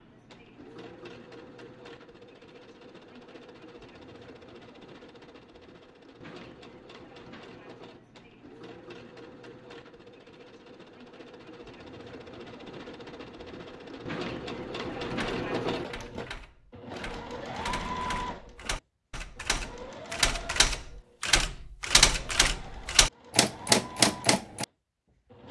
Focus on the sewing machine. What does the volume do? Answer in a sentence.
The loudness of the sewing machine goes up, then down.